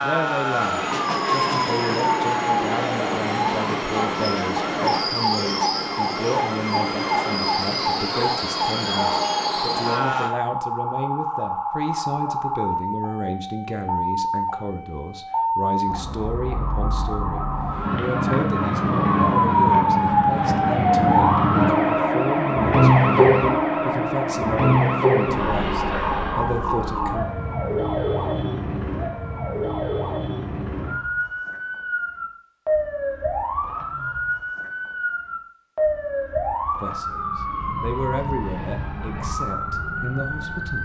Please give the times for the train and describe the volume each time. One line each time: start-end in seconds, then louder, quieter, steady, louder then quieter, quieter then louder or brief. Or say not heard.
0.0-10.3 steady.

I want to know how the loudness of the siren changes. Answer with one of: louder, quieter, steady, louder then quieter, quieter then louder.
louder then quieter.